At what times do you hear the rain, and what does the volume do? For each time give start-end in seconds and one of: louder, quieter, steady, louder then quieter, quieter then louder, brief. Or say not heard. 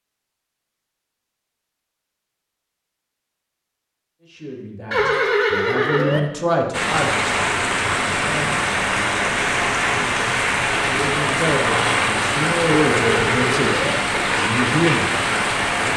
6.7-15.9 steady.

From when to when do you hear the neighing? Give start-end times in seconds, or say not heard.
4.9-6.2, 12.8-13.9.